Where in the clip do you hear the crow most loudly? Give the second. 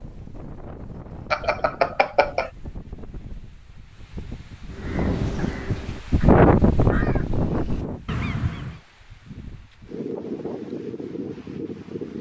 8 s.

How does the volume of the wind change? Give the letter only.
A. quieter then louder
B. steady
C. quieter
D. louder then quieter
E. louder
D.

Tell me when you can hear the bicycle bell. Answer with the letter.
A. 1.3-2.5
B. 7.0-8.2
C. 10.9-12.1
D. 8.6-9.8
A.